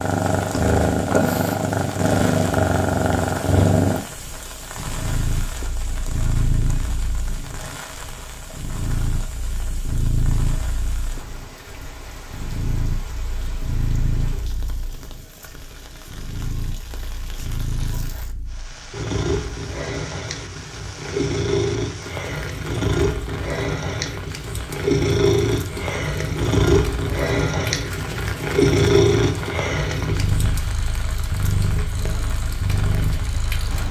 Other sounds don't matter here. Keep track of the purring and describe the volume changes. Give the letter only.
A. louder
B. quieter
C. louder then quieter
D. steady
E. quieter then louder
E.